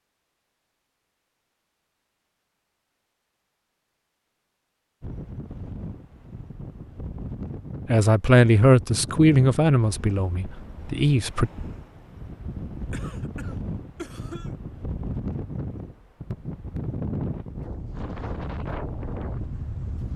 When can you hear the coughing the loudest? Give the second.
14 s.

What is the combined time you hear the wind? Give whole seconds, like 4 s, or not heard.
15 s.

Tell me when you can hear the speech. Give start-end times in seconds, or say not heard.
7.8-11.5.